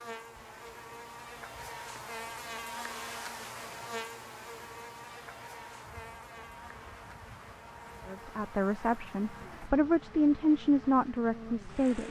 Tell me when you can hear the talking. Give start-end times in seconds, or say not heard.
8.1-12.0.